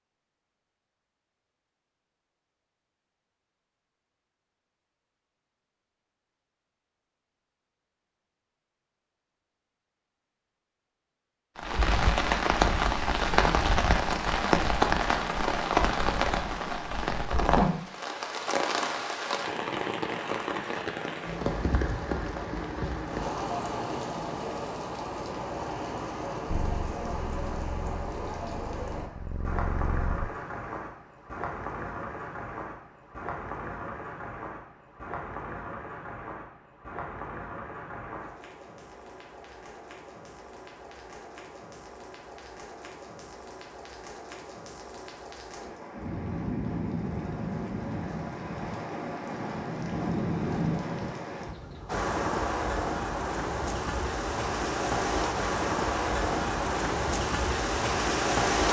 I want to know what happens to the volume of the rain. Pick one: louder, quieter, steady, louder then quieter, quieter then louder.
quieter then louder.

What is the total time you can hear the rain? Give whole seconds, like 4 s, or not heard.
47 s.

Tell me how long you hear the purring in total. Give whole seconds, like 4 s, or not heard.
4 s.